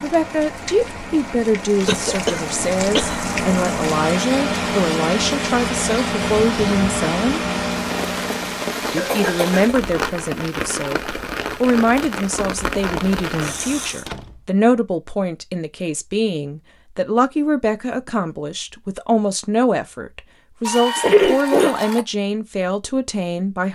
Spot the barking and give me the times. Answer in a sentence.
The barking can't be heard in this clip.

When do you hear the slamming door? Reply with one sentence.
You can hear the slamming door from 13.9 to 14.5 s.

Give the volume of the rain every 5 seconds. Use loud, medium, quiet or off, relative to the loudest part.
loud, loud, loud, off, off.